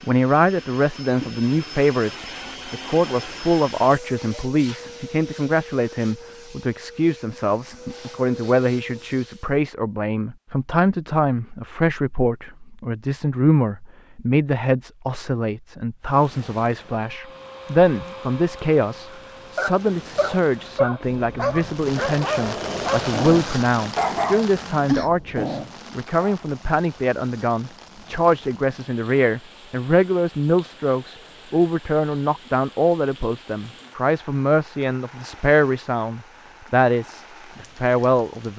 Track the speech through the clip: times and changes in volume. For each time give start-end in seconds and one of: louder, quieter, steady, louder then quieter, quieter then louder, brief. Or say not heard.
0.0-38.5 steady.